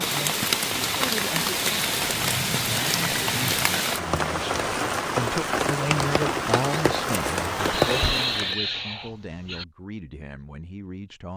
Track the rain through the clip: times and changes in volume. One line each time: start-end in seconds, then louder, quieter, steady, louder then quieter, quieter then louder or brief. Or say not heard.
0.0-8.6 steady.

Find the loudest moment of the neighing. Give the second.
8 s.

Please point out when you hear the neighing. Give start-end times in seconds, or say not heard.
2.0-3.6, 7.7-9.7.